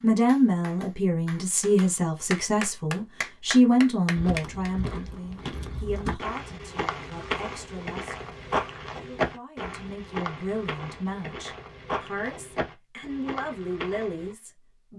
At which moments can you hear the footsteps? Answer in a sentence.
You can hear the footsteps from 4.2 to 14.3 s.